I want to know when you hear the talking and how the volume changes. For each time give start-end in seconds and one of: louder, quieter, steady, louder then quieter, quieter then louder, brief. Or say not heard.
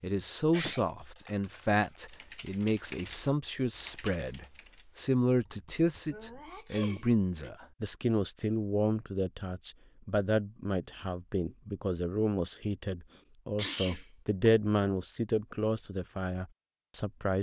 0.0-17.3 steady.